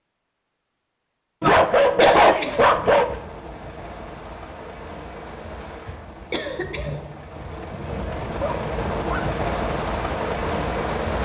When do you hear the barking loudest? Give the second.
2 s.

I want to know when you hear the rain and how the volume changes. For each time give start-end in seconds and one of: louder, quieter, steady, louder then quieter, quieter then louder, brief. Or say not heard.
2.5-11.2 louder.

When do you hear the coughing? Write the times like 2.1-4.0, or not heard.
1.6-3.1, 5.8-7.5.